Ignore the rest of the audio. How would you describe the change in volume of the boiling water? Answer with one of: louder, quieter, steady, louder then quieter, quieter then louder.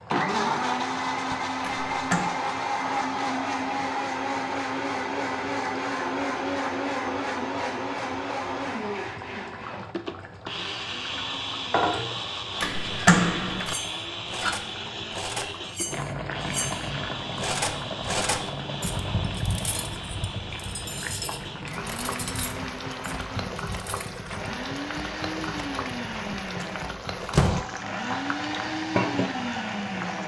louder.